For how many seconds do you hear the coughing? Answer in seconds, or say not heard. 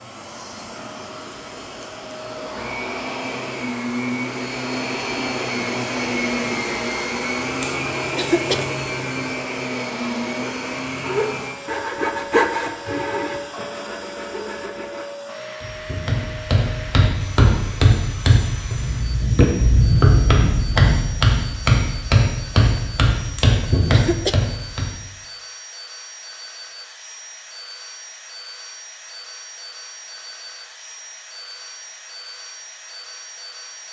2 s.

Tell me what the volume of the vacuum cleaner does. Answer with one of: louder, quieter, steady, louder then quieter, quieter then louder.
quieter.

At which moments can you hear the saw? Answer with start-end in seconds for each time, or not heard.
10.4-15.1.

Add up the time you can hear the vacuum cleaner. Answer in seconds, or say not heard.
34 s.